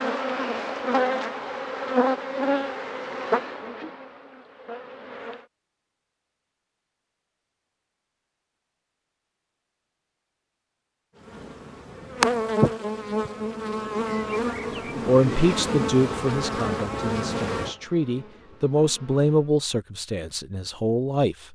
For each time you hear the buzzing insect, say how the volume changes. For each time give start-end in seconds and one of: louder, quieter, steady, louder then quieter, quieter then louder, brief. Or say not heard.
0.0-5.5 quieter
11.2-19.6 quieter.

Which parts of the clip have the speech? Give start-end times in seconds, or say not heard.
15.1-21.4.